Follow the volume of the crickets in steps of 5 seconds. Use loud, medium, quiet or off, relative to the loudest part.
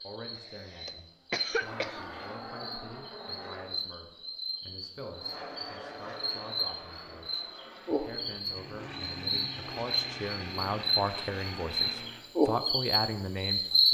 quiet, medium, loud.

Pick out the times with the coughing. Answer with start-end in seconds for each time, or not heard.
0.3-2.0.